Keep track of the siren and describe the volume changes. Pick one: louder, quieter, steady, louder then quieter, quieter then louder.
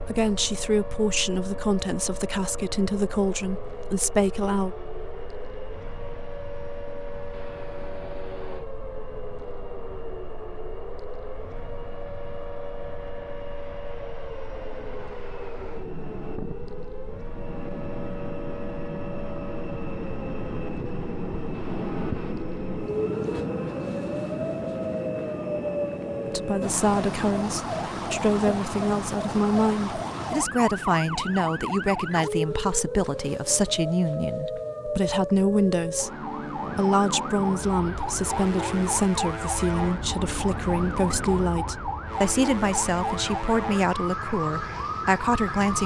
louder.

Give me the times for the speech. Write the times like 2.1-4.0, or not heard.
0.0-4.8, 26.2-45.8.